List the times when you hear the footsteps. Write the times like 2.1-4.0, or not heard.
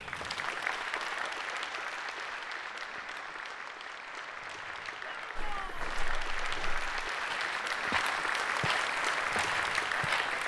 5.3-10.4.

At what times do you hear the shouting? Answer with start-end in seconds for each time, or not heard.
5.0-5.9.